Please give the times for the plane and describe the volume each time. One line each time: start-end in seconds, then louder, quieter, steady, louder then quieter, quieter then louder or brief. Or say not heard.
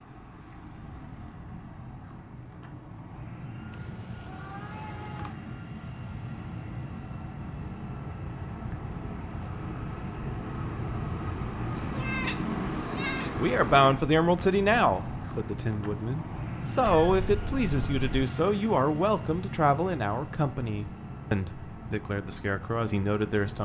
0.0-23.6 louder then quieter.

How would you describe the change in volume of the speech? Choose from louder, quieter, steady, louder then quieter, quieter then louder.
quieter.